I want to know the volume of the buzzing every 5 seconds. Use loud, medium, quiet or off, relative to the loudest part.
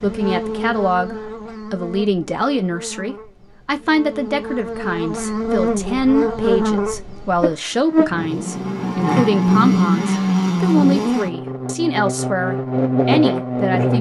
medium, loud, loud.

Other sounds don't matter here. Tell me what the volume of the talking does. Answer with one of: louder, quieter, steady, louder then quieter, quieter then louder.
steady.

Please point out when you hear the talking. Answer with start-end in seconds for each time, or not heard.
0.0-13.9.